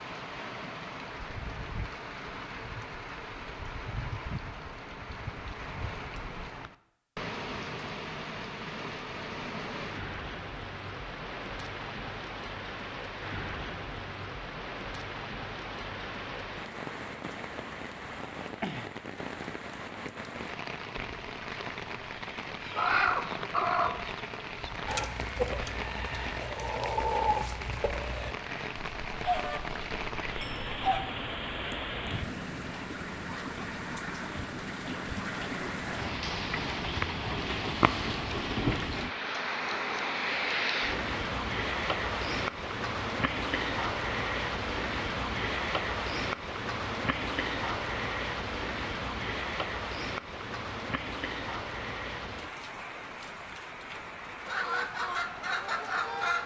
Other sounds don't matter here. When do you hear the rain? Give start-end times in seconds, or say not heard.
0.0-56.4.